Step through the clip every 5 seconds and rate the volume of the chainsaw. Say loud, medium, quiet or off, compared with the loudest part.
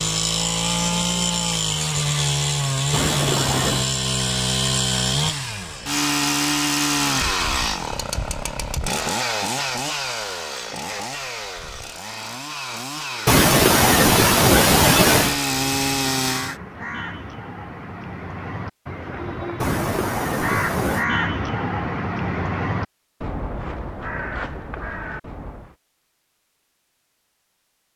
loud, loud, medium, loud, off, off.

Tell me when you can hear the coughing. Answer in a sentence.
You can hear the coughing from 2.9 to 3.9 s, from 13.2 to 15.3 s and from 19.6 to 21.1 s.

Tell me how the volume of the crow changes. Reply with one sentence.
The loudness of the crow goes up, then down.